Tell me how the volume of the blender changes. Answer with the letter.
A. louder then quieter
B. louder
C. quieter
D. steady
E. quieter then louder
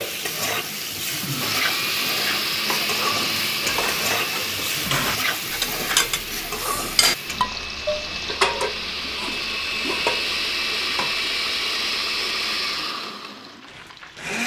E.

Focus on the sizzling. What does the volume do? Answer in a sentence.
The loudness of the sizzling goes down.